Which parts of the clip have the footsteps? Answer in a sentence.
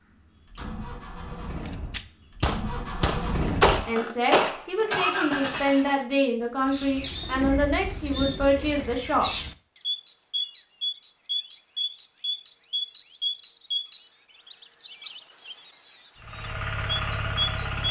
You can't hear the footsteps here.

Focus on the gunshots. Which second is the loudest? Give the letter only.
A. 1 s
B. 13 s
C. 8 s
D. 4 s
D.